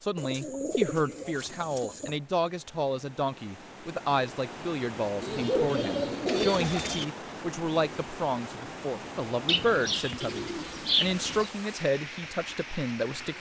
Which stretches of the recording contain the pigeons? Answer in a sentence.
The pigeons can be heard from 0.1 to 2.2 s, from 5.2 to 7.0 s and from 9.4 to 11.5 s.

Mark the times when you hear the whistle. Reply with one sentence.
You can't hear the whistle here.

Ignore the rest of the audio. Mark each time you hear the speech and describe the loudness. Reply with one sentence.
The speech can be heard from 0.0 to 13.3 s, at a steady volume.